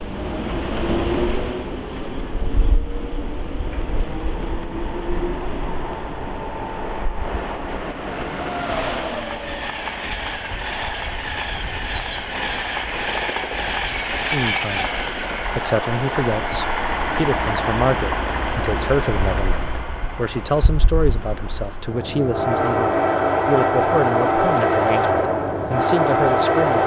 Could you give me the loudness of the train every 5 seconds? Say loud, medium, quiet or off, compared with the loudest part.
medium, medium, medium, medium, loud, loud.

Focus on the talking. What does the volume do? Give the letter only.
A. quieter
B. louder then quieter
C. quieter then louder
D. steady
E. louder
D.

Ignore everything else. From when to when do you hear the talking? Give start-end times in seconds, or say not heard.
14.3-26.8.